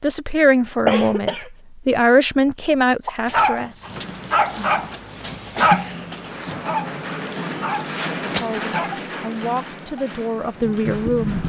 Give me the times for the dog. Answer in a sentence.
The dog can be heard from 3.0 to 8.9 s.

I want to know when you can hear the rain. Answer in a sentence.
You can hear the rain from 3.9 to 11.4 s.